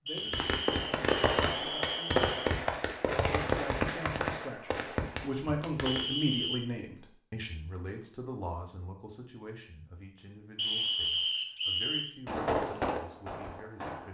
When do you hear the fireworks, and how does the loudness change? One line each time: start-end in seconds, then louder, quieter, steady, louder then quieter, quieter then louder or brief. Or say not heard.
0.1-6.0 quieter
12.2-14.0 brief.